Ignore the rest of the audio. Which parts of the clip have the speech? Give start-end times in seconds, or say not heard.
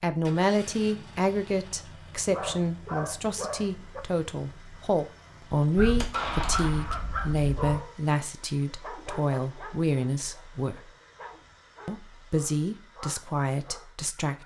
0.0-10.8, 11.8-14.4.